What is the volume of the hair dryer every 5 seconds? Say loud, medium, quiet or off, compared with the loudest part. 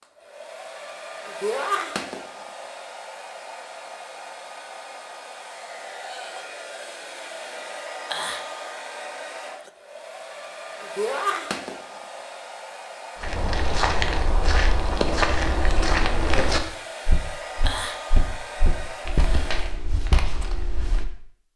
loud, loud, loud, loud, off.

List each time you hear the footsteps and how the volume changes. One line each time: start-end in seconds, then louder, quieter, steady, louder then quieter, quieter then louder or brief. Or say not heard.
13.2-21.1 quieter.